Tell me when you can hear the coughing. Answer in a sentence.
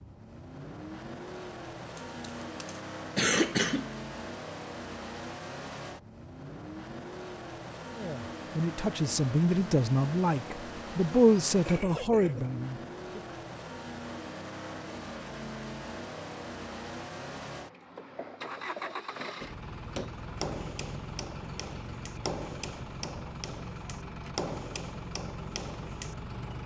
The coughing can be heard from 1.9 to 3.9 s, from 11.4 to 12.4 s and from 17.9 to 19.0 s.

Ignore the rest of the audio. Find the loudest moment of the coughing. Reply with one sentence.
The loudest moment of the coughing is at 3 seconds.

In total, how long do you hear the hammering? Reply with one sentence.
The hammering can be heard for 7 seconds in total.